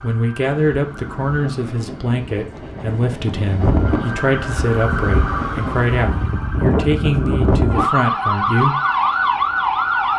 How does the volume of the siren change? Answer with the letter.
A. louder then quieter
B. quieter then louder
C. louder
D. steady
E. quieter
C.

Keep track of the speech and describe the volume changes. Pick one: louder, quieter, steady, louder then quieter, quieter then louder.
steady.